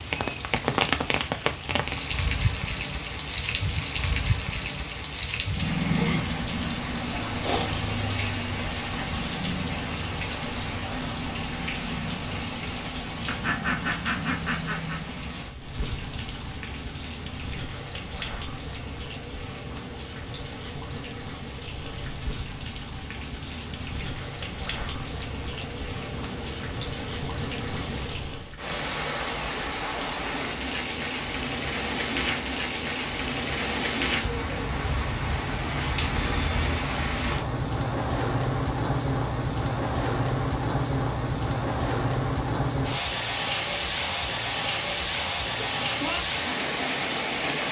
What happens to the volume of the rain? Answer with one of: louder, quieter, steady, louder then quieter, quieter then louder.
quieter then louder.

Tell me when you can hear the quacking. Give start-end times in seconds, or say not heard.
13.2-15.0.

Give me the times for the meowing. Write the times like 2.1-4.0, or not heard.
45.5-46.2.